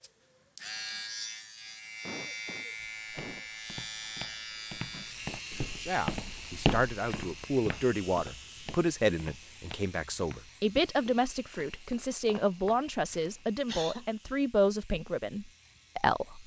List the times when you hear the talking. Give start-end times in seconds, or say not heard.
5.8-16.4.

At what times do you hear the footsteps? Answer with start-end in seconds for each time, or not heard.
2.8-12.9.